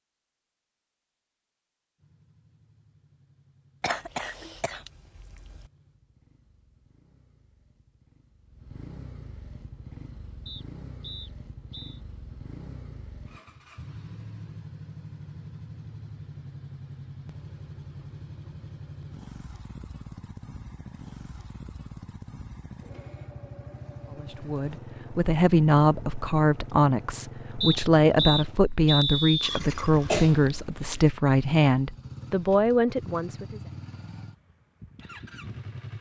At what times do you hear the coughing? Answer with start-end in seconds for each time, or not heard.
3.8-5.7, 29.7-31.1.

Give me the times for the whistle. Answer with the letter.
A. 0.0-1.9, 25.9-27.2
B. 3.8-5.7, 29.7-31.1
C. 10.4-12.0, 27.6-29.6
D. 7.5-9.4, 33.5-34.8
C.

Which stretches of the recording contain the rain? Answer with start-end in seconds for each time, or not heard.
not heard.